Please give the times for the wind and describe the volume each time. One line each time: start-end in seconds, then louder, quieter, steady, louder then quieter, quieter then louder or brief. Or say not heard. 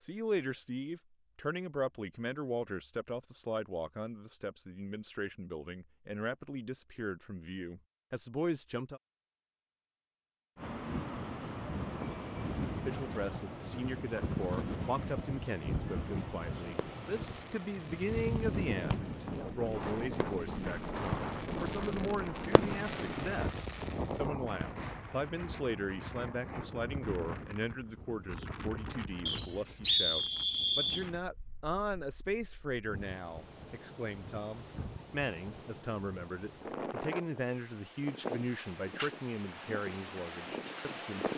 10.6-41.3 quieter then louder.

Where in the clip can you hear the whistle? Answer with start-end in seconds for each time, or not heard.
29.2-31.1.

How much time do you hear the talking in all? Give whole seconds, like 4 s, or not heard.
38 s.